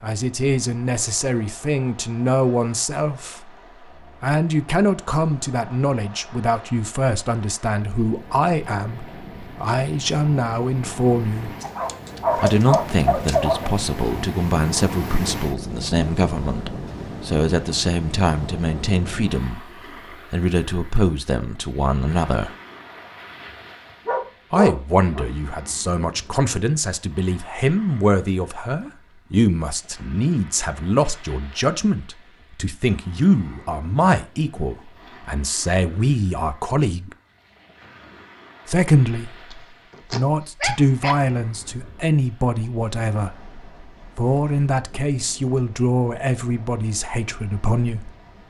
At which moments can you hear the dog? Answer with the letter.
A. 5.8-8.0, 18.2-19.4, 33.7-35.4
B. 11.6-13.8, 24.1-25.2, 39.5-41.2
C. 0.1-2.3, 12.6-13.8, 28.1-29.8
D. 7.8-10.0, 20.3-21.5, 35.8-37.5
B.